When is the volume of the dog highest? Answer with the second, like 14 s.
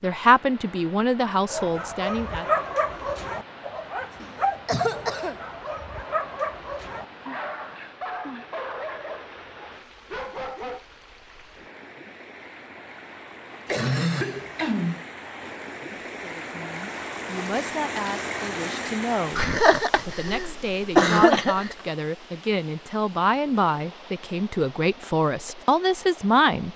3 s.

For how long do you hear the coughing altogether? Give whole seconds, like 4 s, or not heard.
5 s.